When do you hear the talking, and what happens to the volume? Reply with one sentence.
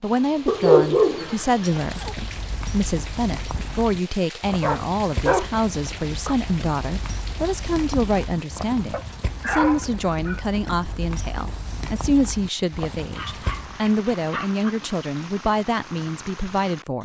You can hear the talking from 0.0 to 17.0 s, at a steady volume.